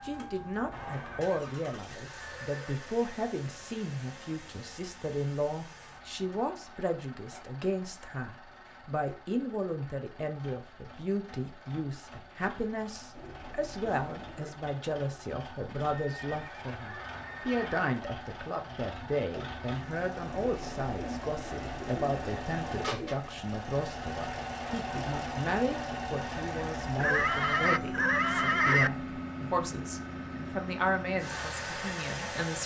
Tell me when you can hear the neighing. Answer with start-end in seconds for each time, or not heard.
0.8-2.9, 15.7-17.9, 26.9-28.9.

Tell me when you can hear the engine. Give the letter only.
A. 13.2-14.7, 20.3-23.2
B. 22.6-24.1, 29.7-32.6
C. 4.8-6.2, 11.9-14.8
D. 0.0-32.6
D.